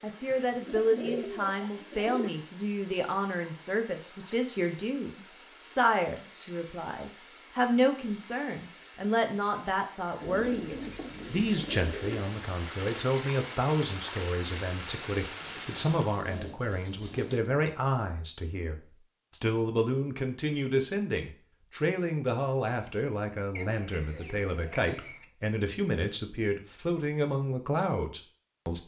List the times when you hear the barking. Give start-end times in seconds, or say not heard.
not heard.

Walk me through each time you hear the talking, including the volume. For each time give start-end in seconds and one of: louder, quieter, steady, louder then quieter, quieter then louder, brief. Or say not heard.
0.0-28.8 steady.